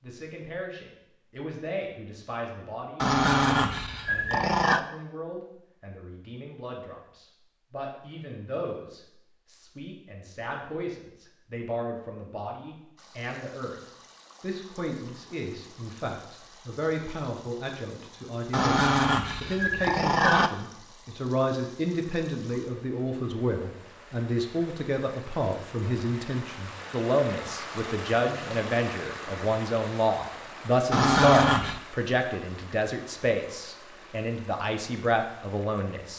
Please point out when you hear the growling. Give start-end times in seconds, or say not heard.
3.0-4.8, 18.5-20.5, 30.9-31.8.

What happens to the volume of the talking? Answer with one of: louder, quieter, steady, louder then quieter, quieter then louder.
louder.